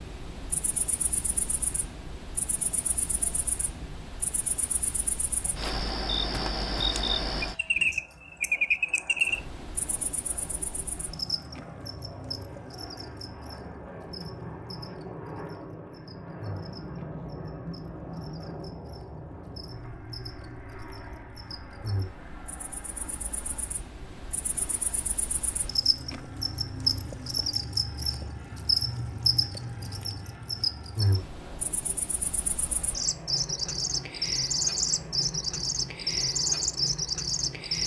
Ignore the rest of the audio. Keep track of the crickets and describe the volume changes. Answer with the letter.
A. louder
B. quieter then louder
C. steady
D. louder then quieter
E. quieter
B.